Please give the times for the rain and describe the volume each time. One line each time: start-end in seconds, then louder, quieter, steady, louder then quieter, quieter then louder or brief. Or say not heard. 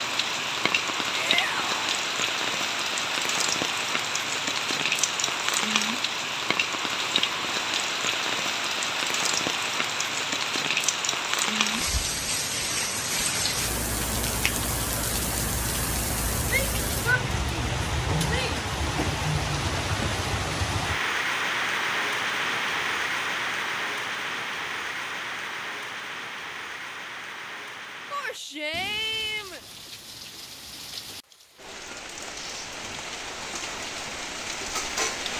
0.0-35.3 quieter.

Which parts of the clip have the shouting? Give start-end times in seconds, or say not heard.
1.1-1.8, 16.4-18.6, 28.1-29.6.